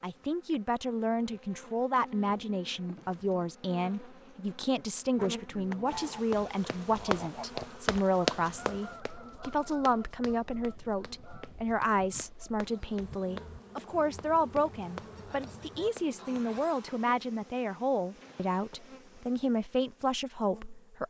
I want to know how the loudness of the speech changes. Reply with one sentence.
The volume of the speech stays about the same.